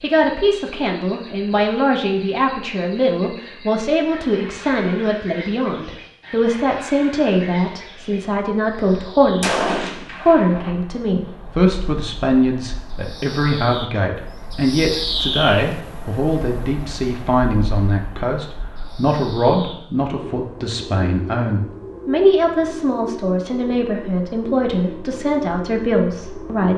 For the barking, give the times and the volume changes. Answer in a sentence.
You can't hear the barking here.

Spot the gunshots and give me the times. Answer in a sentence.
The gunshots can be heard from 8.7 to 10.7 s.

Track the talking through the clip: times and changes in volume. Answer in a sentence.
The talking can be heard from 0.0 to 26.7 s, at a steady volume.